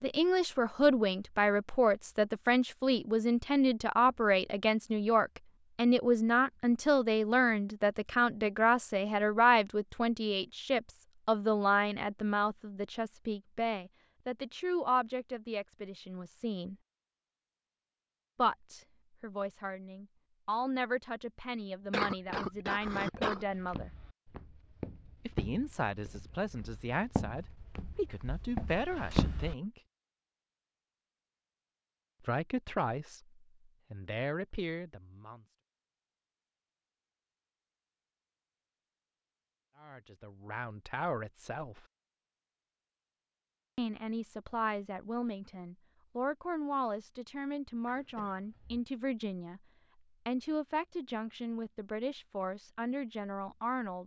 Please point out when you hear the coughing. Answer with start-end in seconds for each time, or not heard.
21.9-23.4, 47.9-48.9.